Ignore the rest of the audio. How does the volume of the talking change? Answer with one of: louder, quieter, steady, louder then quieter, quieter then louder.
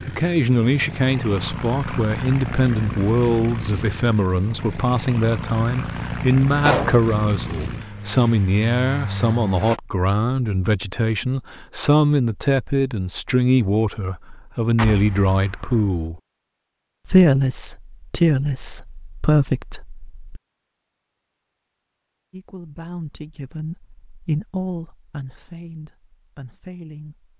quieter.